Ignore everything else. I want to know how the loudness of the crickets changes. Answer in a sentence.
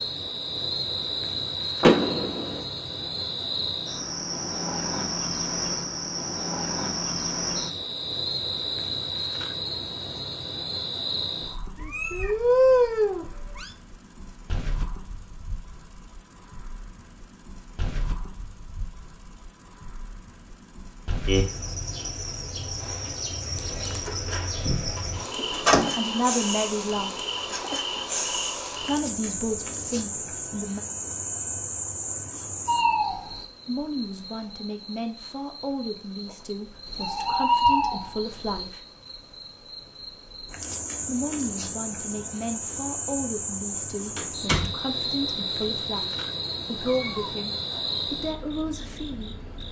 The loudness of the crickets goes down, then up.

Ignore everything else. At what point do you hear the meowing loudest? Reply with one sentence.
The volume of the meowing peaks at 13 seconds.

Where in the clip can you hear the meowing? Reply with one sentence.
You can hear the meowing from 11.8 to 13.8 s, from 23.6 to 24.1 s and from 46.8 to 48.0 s.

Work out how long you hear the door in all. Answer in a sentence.
The door can be heard for 3 seconds in total.